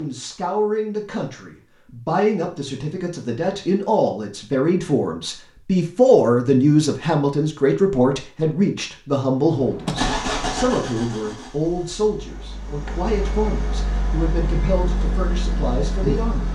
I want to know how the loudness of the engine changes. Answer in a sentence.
The volume of the engine goes down, then up.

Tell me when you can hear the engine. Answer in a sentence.
You can hear the engine from 9.4 to 16.5 s.